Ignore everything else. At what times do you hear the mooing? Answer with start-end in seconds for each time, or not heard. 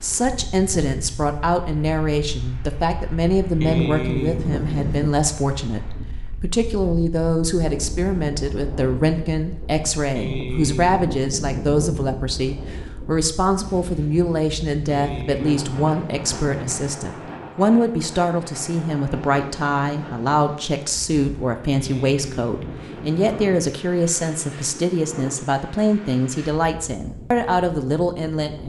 3.6-5.2, 10.2-12.2, 14.9-16.9, 21.8-23.8.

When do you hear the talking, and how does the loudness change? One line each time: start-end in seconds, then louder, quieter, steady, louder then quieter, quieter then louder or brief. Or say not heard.
0.0-28.6 steady.